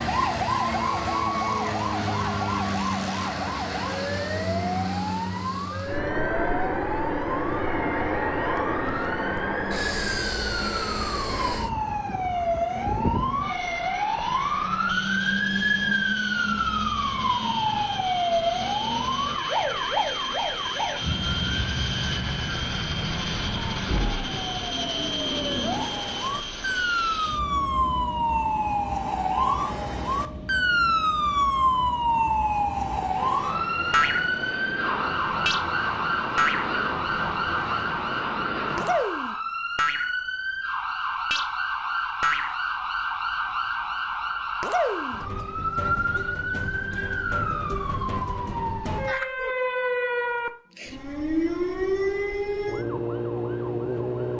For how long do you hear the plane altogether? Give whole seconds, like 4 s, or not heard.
39 s.